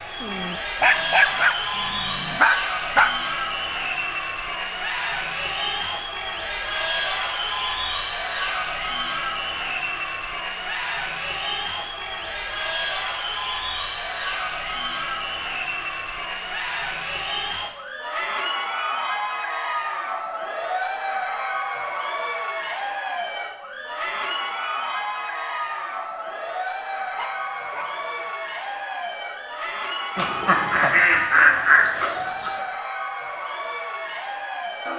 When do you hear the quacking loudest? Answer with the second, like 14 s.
32 s.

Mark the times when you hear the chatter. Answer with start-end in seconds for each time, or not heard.
0.0-34.9.